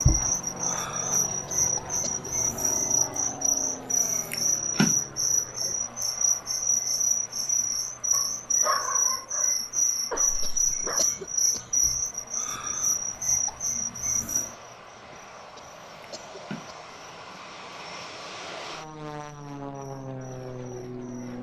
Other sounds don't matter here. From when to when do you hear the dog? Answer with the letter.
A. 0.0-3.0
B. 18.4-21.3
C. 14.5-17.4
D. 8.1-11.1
D.